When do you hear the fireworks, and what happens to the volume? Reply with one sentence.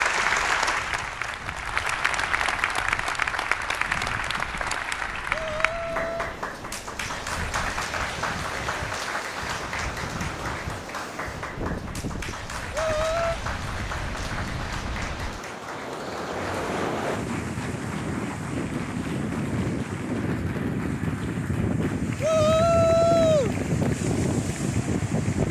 The fireworks can't be heard in this clip.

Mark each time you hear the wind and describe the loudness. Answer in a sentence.
The wind can be heard from 0.0 to 25.4 s, getting louder.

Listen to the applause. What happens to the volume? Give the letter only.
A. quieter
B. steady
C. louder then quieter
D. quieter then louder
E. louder
A.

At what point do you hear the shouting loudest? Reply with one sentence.
The loudest moment of the shouting is at 23 seconds.